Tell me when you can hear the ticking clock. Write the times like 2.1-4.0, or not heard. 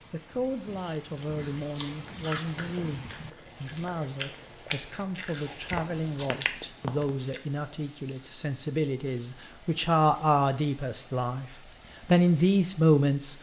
not heard.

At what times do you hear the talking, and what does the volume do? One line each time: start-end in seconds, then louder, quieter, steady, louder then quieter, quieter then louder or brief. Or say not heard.
0.1-11.4 louder
12.1-13.3 brief.